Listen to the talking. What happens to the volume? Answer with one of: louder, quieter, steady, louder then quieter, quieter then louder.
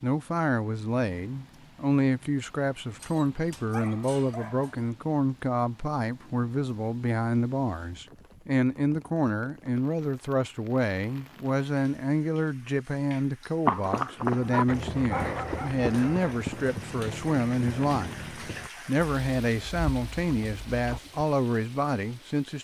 steady.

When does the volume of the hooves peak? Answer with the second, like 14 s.
14 s.